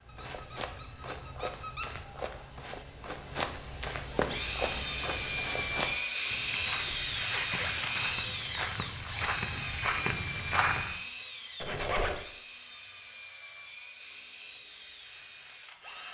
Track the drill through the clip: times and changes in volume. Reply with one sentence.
The drill can be heard from 4.2 to 16.0 s, getting quieter.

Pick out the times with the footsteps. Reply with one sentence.
You can hear the footsteps from 0.0 to 11.0 s.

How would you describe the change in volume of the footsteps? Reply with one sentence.
The volume of the footsteps goes up.